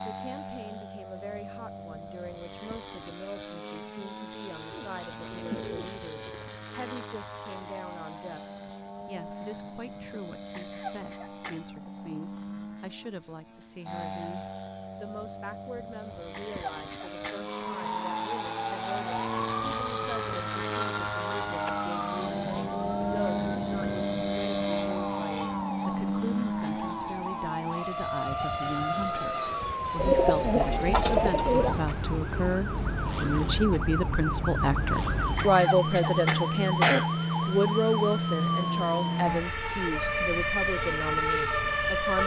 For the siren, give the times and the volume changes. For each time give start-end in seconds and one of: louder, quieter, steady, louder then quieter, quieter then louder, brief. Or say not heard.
17.5-42.2 louder.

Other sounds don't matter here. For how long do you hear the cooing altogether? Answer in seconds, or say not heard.
4 s.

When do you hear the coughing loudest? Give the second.
37 s.